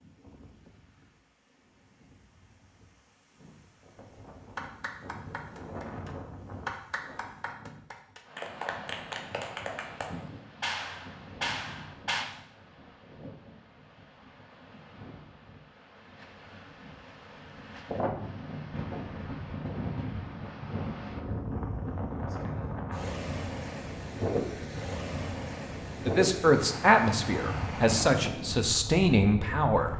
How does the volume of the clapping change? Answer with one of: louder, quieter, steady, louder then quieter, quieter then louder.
louder.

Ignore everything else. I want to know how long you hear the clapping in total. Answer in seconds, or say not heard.
8 s.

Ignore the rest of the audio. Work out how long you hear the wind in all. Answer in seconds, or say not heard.
30 s.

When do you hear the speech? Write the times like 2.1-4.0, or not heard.
26.1-29.9.